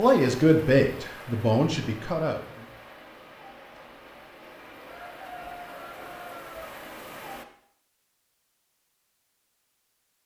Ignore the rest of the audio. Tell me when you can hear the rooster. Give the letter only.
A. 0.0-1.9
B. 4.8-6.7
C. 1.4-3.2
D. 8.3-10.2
B.